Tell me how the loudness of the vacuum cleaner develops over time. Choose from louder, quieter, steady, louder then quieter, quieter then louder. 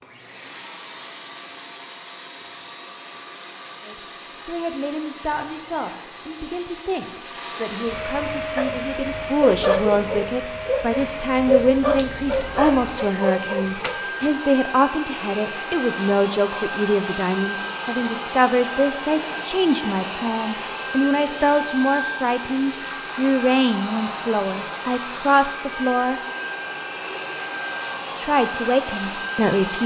louder.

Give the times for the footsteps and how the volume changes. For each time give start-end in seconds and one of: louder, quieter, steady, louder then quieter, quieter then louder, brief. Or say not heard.
not heard.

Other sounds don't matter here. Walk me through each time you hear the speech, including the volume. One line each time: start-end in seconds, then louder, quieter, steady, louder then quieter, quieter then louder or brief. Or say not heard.
3.9-26.2 louder
28.1-29.8 brief.